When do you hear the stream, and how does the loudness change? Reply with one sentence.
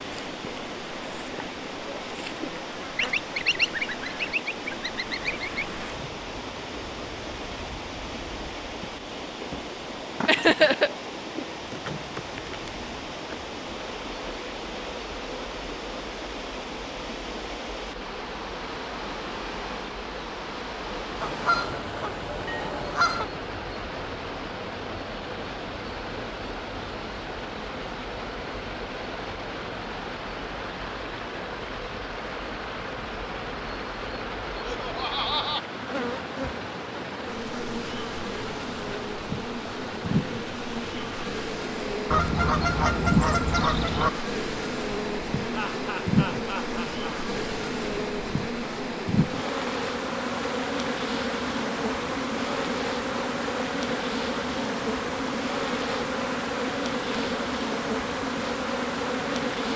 You can hear the stream from 0.0 to 59.7 s, at a steady volume.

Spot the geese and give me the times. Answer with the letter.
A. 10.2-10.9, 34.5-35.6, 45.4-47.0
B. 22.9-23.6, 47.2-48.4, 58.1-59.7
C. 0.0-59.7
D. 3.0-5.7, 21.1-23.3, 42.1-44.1
D.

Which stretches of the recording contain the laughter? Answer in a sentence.
You can hear the laughter from 10.2 to 10.9 s, from 34.5 to 35.6 s and from 45.4 to 47.0 s.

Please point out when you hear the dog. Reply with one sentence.
You can't hear the dog here.